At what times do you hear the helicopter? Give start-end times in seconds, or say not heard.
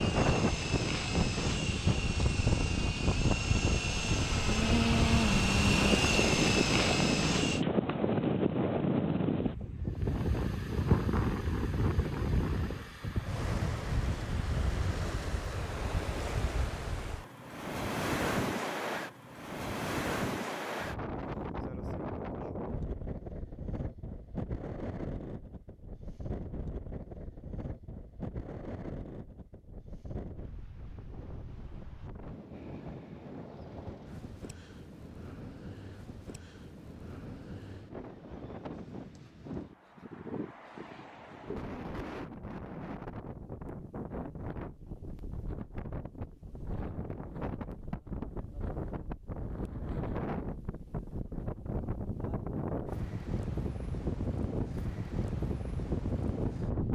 0.0-7.7.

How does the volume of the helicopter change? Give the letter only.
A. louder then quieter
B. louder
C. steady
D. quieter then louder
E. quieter
B.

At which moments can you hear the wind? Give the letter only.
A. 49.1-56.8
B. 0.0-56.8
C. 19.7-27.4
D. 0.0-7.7
B.